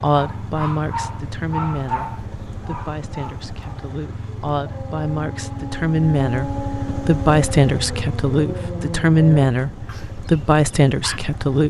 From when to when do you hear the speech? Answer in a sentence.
You can hear the speech from 0.0 to 11.6 s.